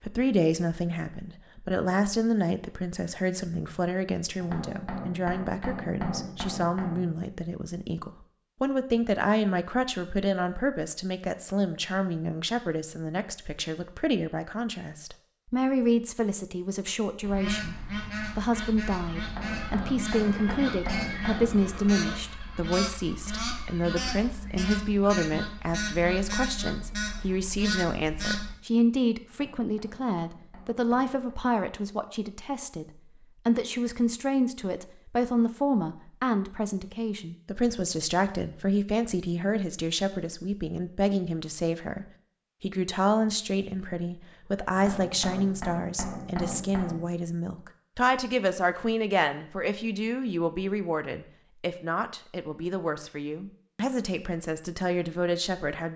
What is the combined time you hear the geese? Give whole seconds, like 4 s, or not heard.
11 s.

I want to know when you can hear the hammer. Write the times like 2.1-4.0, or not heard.
4.4-7.2, 19.2-21.6, 29.3-31.4, 44.8-47.1.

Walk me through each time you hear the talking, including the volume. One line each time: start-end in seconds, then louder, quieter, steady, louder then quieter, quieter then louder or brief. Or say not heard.
0.0-55.9 steady.